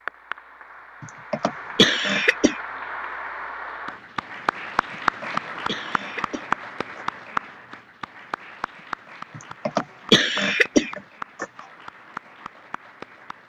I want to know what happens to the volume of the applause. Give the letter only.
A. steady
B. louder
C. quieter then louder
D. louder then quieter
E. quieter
D.